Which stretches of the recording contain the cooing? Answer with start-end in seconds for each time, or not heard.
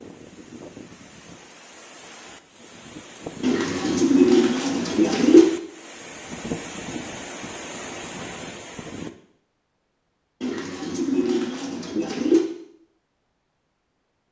3.4-5.5, 10.4-12.4.